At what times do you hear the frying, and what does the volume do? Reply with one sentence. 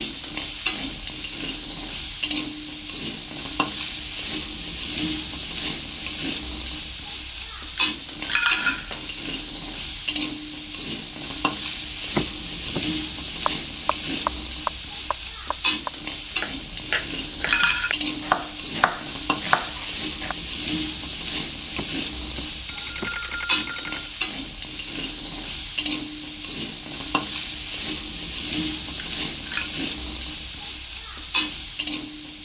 The frying can be heard from 0.0 to 32.4 s, at a steady volume.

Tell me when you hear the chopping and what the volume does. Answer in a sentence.
You can hear the chopping from 13.4 to 20.4 s, getting quieter then louder.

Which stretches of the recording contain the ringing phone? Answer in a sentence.
You can hear the ringing phone from 12.2 to 12.9 s and from 21.8 to 24.1 s.